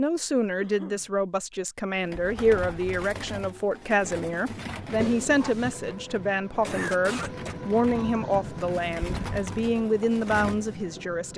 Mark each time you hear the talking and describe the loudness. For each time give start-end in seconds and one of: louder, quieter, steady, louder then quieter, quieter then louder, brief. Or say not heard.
0.0-11.3 steady.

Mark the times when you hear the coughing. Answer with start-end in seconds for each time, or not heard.
0.6-1.1, 6.6-7.5.